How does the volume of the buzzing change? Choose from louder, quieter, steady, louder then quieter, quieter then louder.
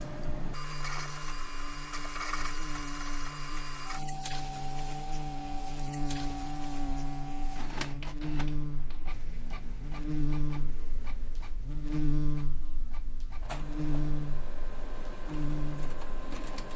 louder.